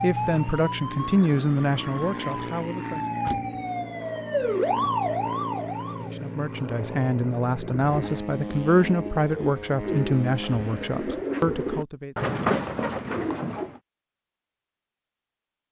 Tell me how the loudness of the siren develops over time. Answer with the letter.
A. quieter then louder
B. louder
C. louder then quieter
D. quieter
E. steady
B.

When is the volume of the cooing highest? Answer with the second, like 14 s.
12 s.